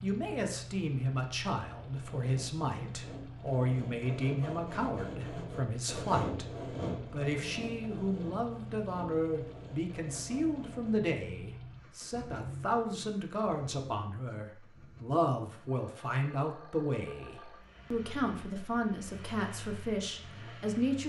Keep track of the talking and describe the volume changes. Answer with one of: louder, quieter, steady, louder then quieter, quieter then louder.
steady.